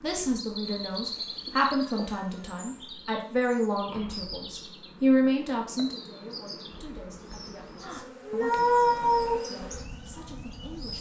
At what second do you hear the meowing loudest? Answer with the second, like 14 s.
9 s.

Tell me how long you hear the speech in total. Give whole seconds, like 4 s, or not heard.
11 s.